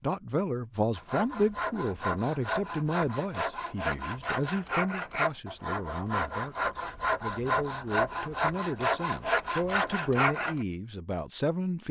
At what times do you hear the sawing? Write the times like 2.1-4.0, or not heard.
0.9-10.7.